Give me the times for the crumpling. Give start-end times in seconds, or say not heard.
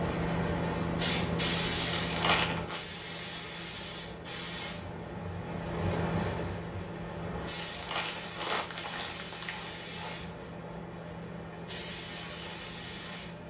1.9-2.8, 7.5-9.5.